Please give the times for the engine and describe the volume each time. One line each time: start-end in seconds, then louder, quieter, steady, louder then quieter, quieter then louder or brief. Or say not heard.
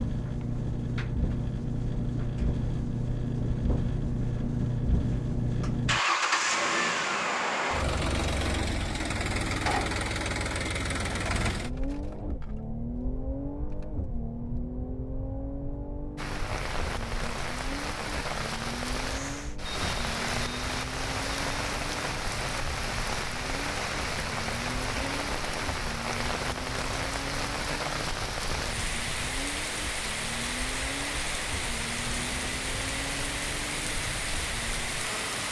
0.0-35.4 quieter.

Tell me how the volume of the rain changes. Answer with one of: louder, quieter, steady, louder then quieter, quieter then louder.
steady.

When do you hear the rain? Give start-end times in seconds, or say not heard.
16.1-35.4.